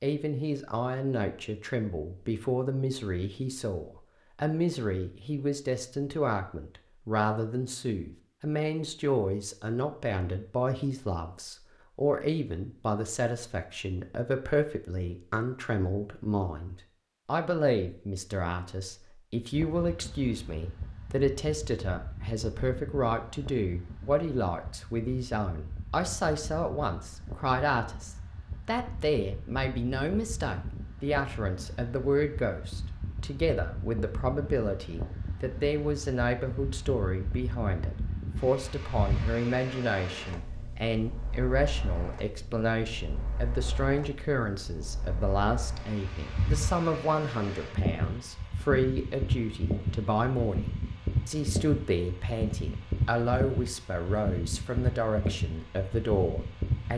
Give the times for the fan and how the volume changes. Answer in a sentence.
You can hear the fan from 19.5 to 56.9 s, getting louder.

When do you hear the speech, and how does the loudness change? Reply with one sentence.
You can hear the speech from 0.0 to 56.9 s, at a steady volume.